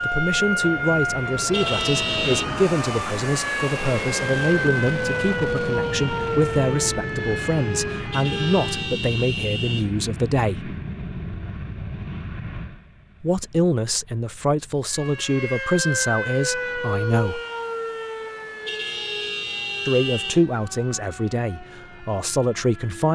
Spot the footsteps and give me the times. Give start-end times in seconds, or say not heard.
not heard.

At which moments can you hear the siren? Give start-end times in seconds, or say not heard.
0.0-9.0, 14.9-23.1.